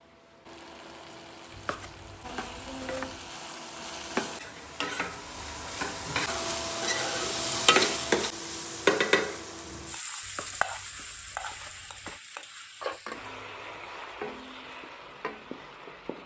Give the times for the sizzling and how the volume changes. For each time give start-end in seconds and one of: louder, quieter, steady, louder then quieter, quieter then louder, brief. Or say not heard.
0.0-16.2 louder then quieter.